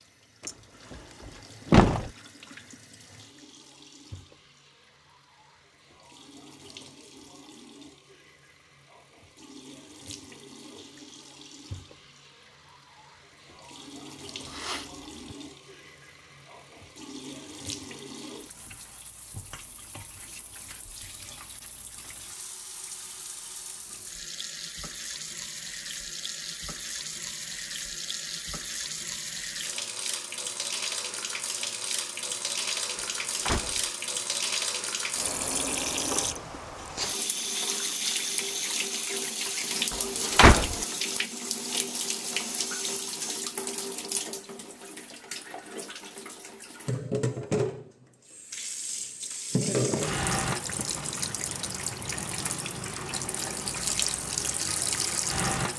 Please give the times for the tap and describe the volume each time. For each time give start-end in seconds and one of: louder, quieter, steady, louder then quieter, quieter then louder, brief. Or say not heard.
0.0-55.7 louder.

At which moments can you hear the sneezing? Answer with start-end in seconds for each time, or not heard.
14.4-15.3.